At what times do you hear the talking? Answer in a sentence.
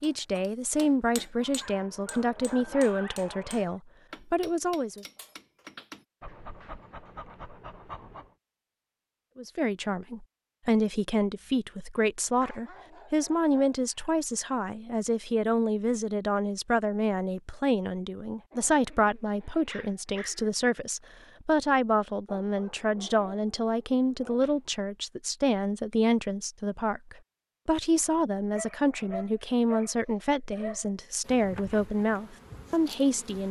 You can hear the talking from 0.0 to 5.0 s and from 9.3 to 33.4 s.